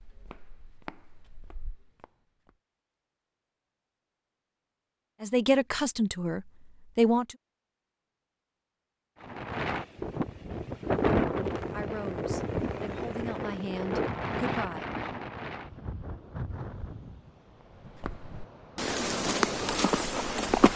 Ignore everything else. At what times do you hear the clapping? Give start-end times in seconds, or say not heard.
not heard.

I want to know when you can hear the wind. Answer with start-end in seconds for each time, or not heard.
9.2-20.7.